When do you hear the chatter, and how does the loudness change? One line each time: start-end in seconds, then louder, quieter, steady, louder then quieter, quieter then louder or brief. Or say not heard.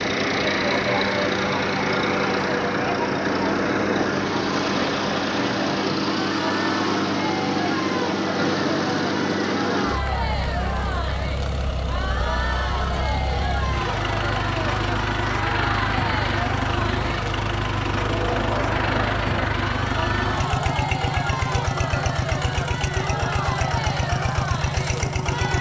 0.2-25.5 steady.